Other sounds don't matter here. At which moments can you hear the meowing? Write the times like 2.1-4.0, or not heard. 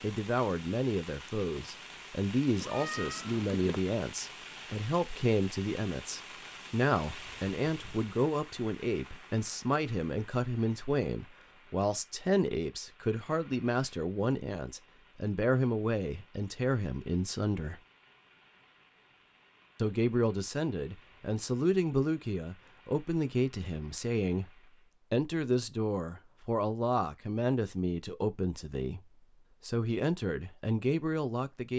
2.6-3.9.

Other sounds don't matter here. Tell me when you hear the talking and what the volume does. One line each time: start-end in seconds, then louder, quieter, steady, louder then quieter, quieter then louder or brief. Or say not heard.
0.0-17.8 steady
19.8-31.7 steady.